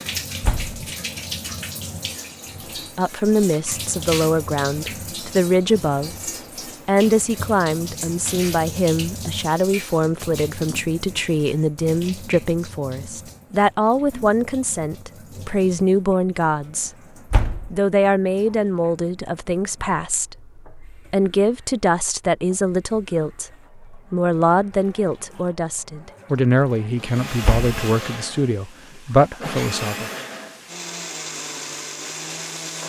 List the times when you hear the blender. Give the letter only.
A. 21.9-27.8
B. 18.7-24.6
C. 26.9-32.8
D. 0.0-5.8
C.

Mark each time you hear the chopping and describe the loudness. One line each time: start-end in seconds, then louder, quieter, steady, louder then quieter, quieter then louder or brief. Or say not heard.
not heard.